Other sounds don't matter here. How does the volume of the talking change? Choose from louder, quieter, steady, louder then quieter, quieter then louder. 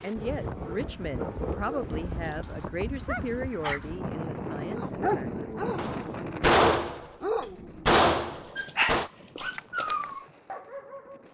quieter.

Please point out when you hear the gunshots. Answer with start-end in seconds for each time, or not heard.
5.8-9.1.